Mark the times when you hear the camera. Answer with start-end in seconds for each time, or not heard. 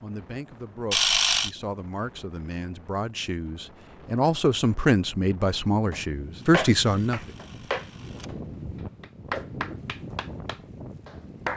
0.9-1.5, 6.4-8.3.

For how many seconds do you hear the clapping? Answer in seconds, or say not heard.
5 s.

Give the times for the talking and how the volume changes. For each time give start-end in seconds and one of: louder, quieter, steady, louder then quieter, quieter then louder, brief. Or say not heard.
0.0-7.3 louder.